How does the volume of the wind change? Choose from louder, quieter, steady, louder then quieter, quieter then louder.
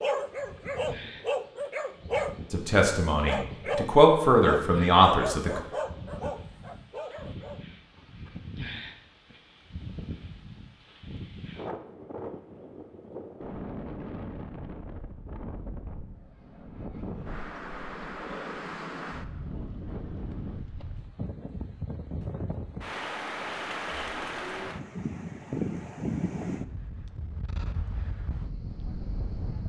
louder.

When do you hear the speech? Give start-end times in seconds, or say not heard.
2.5-5.6.